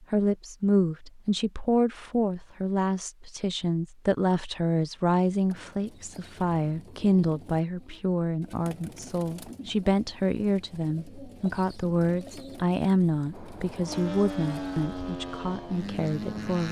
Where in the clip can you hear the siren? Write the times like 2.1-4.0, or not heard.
not heard.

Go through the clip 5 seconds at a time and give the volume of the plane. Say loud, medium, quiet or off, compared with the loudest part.
off, off, loud, loud.